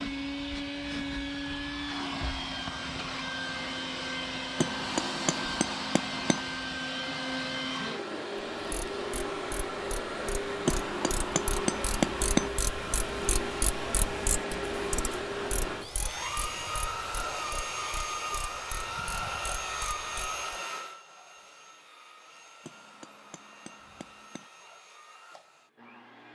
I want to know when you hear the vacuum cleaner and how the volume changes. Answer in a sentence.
You can hear the vacuum cleaner from 0.0 to 26.3 s, getting quieter.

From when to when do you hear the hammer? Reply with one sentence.
You can hear the hammer from 4.5 to 6.5 s, from 10.7 to 12.5 s and from 22.6 to 24.5 s.